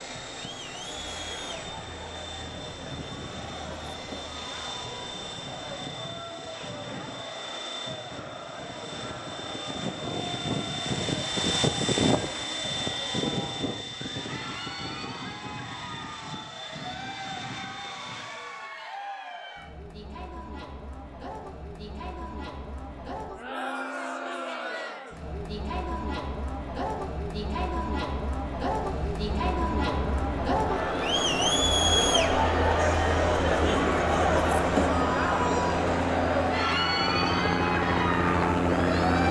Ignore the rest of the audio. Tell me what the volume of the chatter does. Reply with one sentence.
The volume of the chatter goes up.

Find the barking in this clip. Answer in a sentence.
You can't hear the barking here.